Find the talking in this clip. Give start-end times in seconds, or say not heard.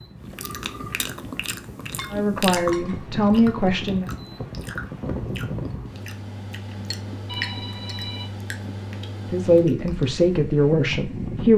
2.1-4.0, 9.3-11.5.